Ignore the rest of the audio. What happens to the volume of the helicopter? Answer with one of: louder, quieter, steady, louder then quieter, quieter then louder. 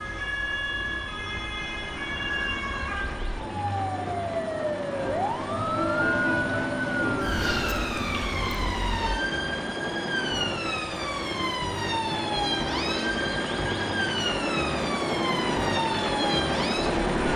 louder.